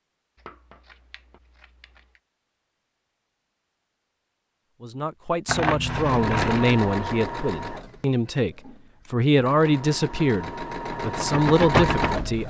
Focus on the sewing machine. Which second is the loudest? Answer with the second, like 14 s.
12 s.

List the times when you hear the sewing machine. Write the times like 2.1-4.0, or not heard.
5.9-12.4.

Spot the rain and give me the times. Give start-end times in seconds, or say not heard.
not heard.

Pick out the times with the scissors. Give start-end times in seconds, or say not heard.
0.3-2.2, 5.5-6.7, 8.4-9.3.